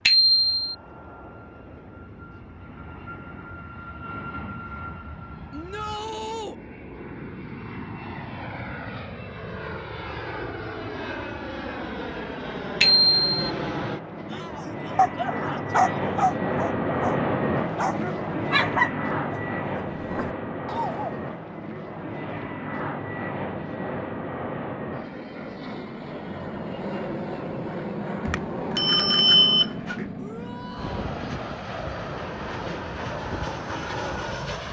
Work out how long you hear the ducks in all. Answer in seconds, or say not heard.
not heard.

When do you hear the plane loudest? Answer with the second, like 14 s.
17 s.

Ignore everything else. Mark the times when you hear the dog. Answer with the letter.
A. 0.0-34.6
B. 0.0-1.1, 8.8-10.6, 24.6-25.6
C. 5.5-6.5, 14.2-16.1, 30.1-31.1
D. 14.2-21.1
D.